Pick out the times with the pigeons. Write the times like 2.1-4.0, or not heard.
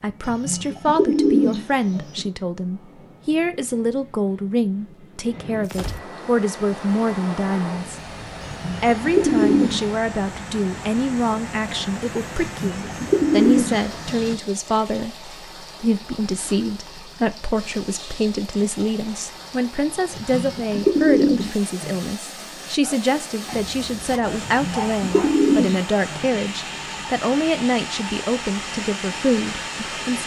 0.2-2.2, 8.4-9.8, 12.3-14.3, 20.1-22.1, 24.4-26.4.